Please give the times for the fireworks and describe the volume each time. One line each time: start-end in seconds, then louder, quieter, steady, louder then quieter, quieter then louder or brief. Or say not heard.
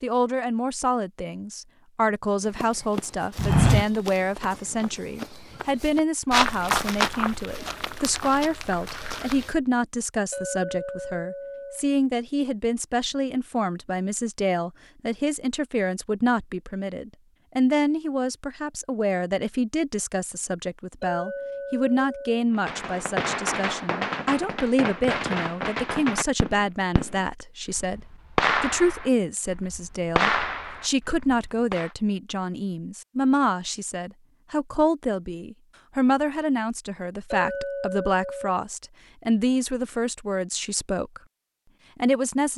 22.6-31.9 quieter then louder.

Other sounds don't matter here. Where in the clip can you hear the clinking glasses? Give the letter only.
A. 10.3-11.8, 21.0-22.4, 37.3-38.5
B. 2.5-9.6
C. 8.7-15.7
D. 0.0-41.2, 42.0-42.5
A.